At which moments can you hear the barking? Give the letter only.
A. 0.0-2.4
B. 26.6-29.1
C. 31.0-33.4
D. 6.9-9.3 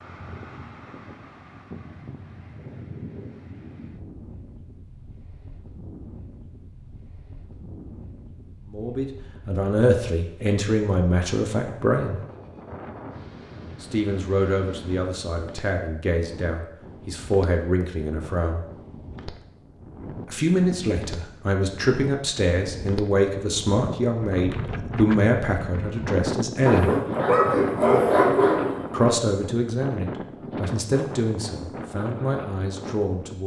B.